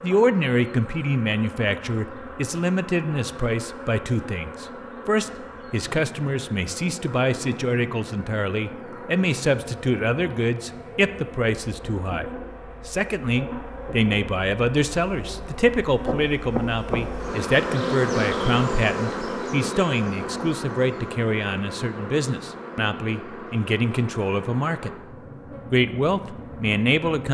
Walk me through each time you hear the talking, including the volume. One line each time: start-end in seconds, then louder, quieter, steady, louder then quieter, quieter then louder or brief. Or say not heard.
0.0-24.9 steady
25.7-27.2 brief.